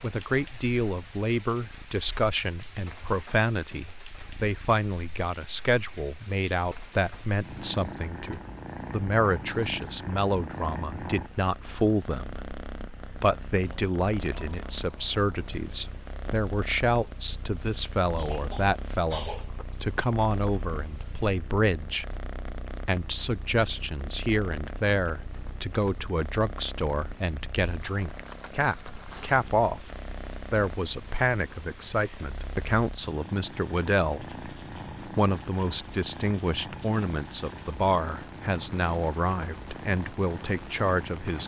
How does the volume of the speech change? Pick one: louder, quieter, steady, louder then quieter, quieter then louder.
steady.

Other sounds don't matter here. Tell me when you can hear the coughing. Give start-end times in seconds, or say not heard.
18.1-19.6.